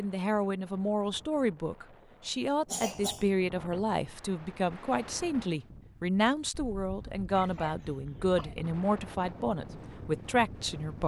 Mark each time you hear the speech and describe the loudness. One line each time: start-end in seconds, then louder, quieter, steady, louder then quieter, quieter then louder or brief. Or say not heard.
0.0-11.0 steady.